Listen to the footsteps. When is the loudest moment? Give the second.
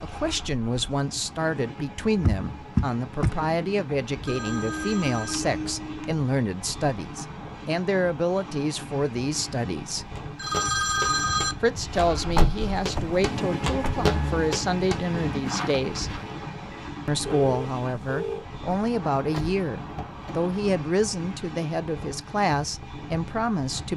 14 s.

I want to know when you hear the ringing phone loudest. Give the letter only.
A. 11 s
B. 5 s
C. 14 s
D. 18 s
A.